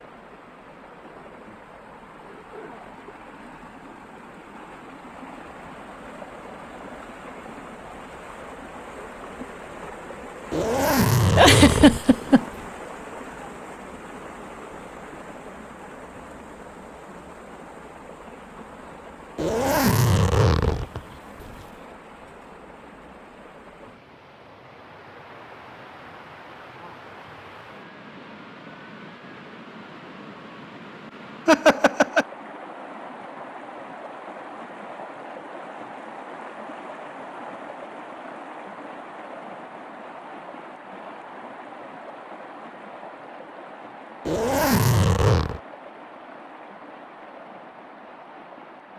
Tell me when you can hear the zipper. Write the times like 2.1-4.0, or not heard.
10.5-12.7, 19.4-21.6, 44.2-45.6.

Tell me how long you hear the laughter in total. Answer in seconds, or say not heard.
2 s.